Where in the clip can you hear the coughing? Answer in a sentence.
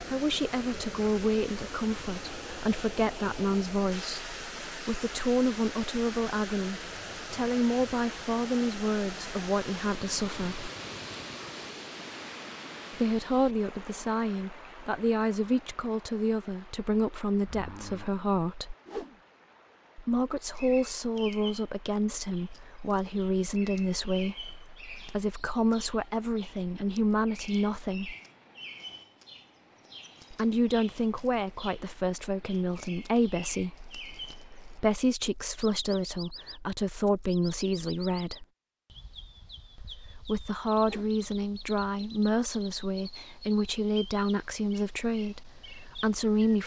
The coughing can't be heard in this clip.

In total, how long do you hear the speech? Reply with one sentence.
The speech can be heard for 40 seconds in total.